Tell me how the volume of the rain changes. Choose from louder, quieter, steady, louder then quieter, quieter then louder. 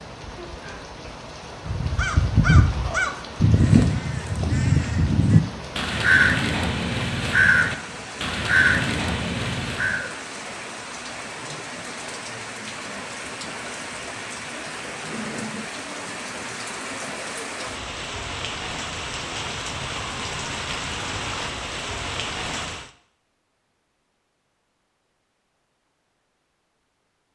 louder.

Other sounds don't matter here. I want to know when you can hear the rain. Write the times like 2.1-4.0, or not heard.
0.0-22.9.